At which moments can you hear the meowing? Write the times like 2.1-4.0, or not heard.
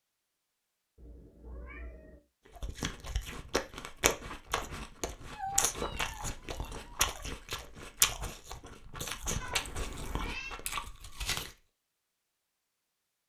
0.9-2.2, 5.3-7.2, 9.4-10.6.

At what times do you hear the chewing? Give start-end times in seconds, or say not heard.
2.5-11.6.